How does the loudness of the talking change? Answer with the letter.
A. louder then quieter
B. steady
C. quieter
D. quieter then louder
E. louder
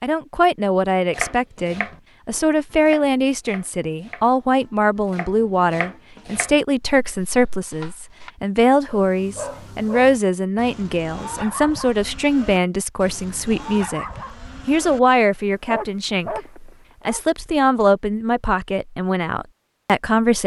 B.